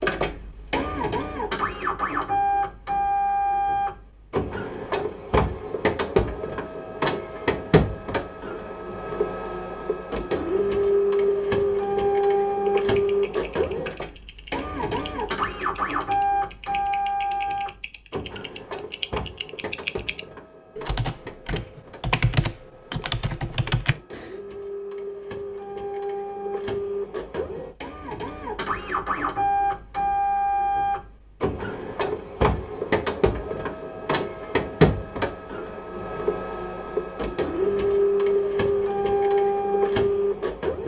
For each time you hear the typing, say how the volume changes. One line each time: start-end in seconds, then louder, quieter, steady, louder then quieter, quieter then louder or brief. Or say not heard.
12.7-24.4 louder.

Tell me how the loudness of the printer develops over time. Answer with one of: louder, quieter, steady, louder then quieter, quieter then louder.
quieter then louder.